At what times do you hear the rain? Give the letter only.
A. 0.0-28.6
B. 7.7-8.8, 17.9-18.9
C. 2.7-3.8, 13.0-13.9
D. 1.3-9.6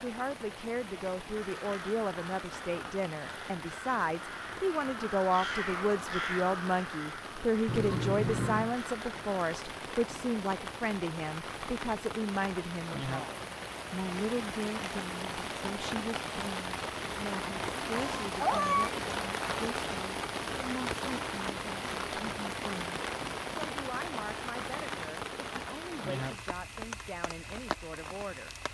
A.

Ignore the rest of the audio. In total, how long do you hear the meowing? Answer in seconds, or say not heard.
2 s.